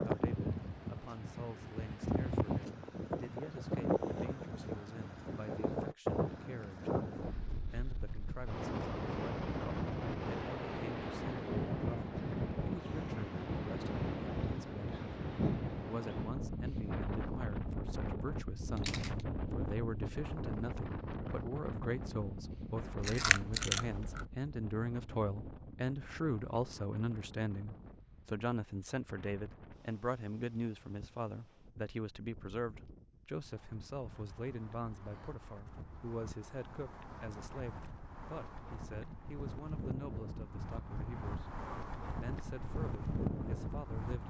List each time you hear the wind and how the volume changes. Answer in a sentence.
You can hear the wind from 0.0 to 44.2 s, getting quieter then louder.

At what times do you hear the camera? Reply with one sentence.
The camera can be heard from 18.8 to 19.2 s and from 22.9 to 24.2 s.